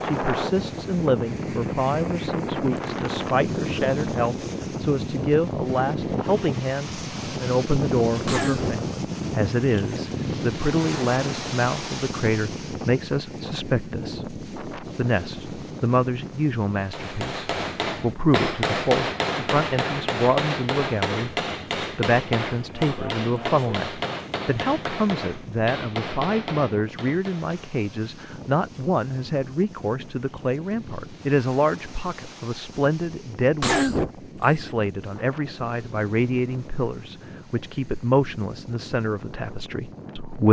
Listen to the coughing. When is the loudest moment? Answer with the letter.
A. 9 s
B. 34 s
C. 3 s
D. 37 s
B.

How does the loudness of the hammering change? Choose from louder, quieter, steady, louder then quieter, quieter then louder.
quieter.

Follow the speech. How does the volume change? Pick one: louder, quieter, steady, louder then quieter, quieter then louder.
steady.